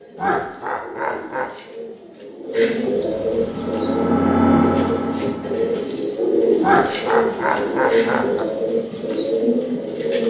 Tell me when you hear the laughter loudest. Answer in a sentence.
The loudest moment of the laughter is at 7 seconds.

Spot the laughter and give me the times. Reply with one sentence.
You can hear the laughter from 0.1 to 1.5 s and from 6.6 to 8.4 s.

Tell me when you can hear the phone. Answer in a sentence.
The phone can't be heard in this clip.